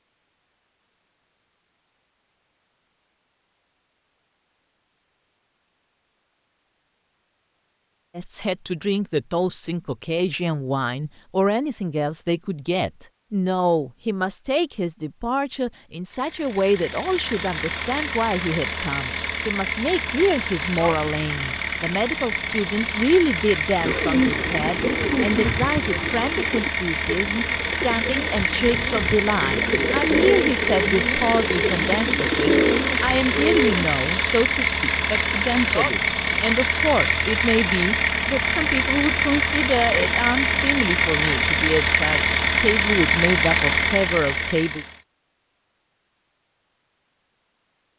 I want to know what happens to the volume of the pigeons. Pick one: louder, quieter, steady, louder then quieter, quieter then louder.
quieter then louder.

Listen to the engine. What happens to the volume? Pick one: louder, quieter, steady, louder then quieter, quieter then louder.
louder.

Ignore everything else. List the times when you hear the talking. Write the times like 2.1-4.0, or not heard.
8.2-44.9.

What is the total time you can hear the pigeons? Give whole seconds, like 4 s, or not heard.
10 s.